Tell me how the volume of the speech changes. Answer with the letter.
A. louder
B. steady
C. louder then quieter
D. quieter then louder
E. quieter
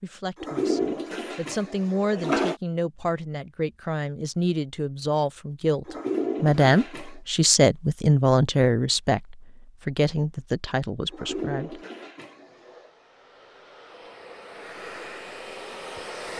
C.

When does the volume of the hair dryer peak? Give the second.
16 s.